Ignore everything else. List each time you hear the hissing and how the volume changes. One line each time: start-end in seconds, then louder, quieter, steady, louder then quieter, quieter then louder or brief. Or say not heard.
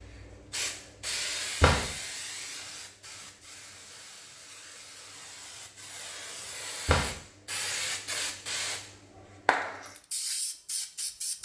0.0-11.4 quieter then louder.